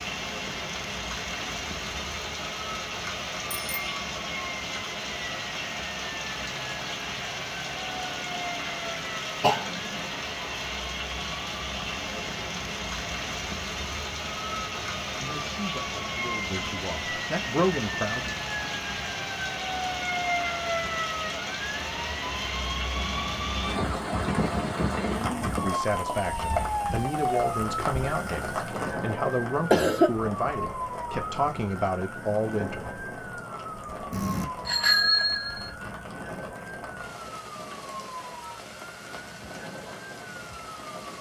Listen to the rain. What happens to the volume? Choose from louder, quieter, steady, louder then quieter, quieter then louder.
quieter.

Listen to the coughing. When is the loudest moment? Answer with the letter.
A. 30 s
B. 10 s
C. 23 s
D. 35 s
A.